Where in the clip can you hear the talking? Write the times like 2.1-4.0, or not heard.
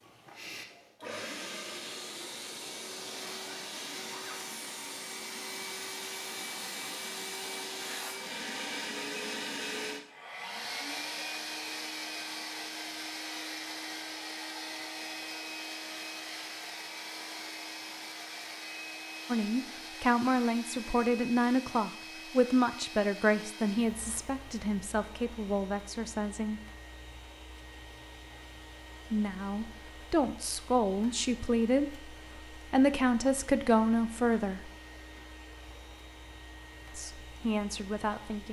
19.2-26.6, 29.1-34.7, 37.0-38.4.